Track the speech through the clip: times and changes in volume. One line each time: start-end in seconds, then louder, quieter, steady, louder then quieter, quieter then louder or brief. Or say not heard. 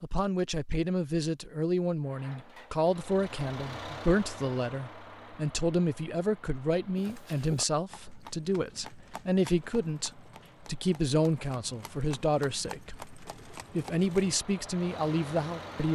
0.0-15.9 steady.